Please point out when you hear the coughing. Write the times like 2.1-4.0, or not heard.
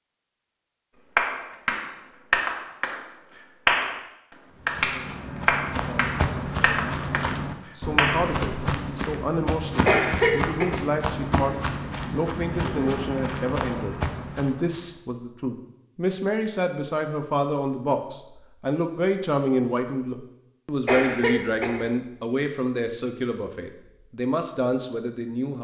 9.8-10.7, 20.9-21.9.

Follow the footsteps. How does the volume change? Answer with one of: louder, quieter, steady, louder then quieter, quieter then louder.
steady.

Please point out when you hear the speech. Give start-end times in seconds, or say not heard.
7.8-25.5.